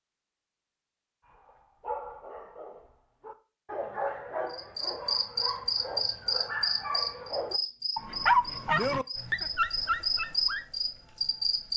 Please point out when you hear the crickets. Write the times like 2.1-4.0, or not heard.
4.5-11.7.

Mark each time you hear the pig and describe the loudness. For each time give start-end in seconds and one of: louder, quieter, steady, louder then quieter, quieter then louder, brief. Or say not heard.
not heard.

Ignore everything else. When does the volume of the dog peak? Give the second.
8 s.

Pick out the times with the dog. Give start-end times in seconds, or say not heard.
1.2-10.7.